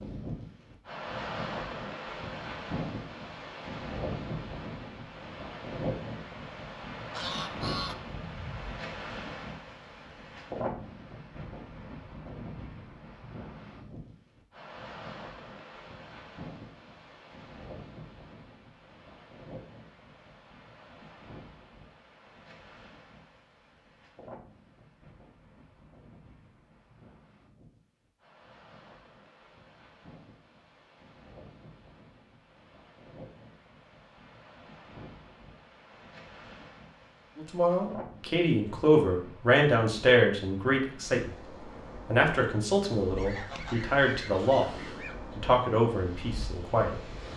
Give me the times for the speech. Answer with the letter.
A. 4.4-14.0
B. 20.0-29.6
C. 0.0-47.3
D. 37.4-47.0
D.